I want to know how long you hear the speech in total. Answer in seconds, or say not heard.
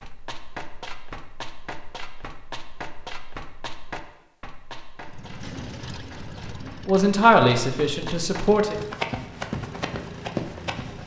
2 s.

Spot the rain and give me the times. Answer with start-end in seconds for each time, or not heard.
not heard.